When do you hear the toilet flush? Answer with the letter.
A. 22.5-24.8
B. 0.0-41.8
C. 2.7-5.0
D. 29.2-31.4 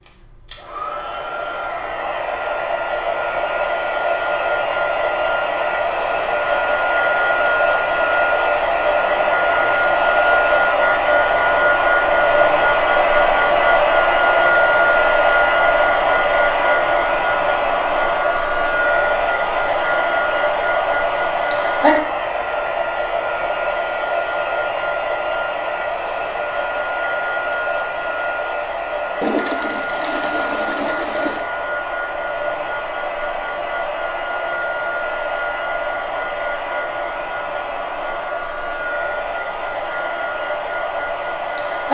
D.